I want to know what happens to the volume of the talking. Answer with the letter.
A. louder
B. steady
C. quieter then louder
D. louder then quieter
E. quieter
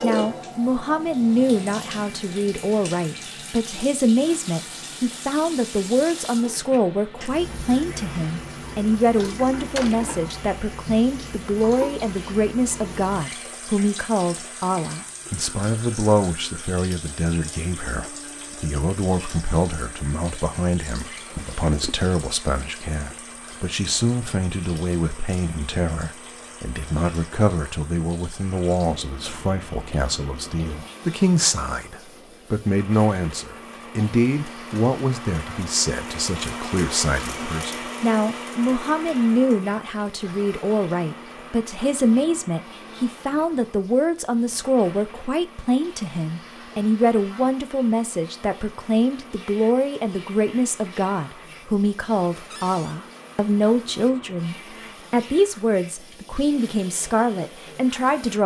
B.